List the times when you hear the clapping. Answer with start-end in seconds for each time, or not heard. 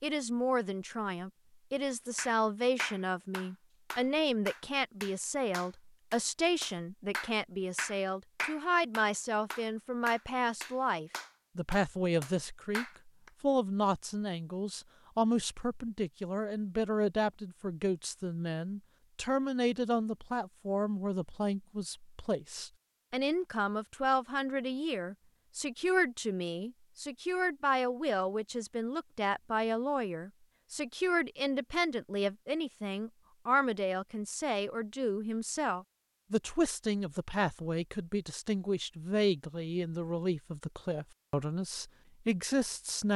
2.1-13.3.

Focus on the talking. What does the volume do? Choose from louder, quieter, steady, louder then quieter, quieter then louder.
steady.